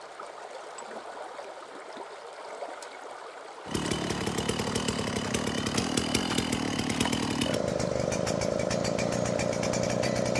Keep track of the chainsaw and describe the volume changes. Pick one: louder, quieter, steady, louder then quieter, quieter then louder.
steady.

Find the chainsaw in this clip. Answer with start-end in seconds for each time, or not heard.
3.6-10.3.